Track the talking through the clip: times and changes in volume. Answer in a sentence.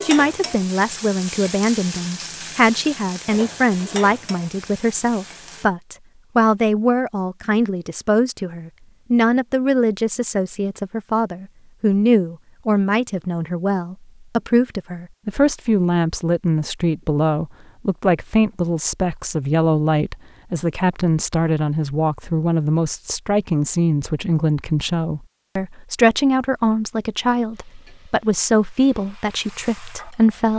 The talking can be heard from 0.0 to 30.5 s, at a steady volume.